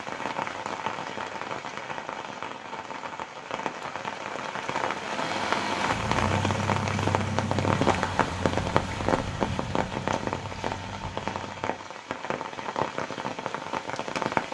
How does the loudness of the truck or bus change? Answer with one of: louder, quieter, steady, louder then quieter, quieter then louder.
quieter.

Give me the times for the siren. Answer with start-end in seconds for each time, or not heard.
not heard.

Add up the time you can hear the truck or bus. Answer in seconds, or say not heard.
7 s.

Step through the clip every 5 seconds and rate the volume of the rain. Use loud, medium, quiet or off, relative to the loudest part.
medium, loud, loud.